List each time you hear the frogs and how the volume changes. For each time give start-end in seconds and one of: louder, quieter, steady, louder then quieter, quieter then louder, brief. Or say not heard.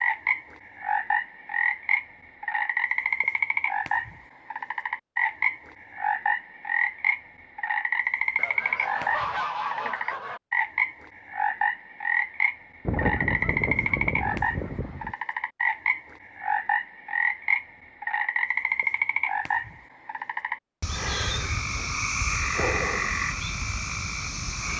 0.0-24.7 steady.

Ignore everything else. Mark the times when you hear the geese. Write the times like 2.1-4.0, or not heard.
8.3-10.4, 12.8-15.1.